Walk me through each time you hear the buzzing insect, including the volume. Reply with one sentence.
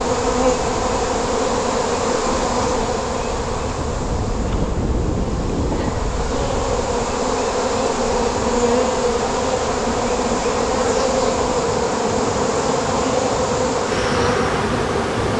The buzzing insect can be heard from 0.0 to 15.3 s, getting quieter then louder.